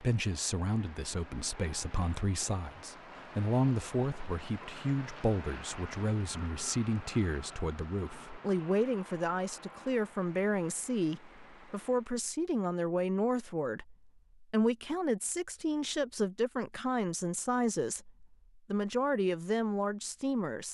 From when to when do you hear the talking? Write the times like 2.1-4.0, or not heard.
0.0-20.6.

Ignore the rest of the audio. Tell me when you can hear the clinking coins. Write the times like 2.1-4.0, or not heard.
not heard.